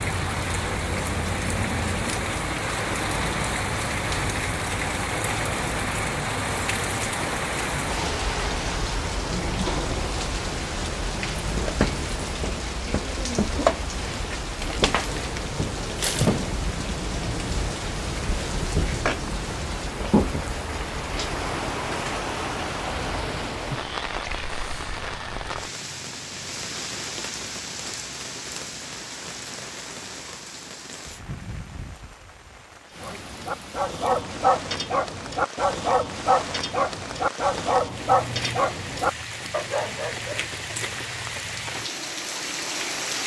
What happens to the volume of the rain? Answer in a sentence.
The volume of the rain goes down.